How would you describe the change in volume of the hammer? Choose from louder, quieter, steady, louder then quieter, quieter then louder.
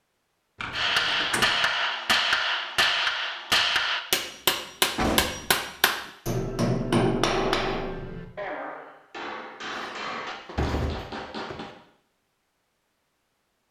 quieter.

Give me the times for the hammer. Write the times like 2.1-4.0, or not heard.
0.7-11.7.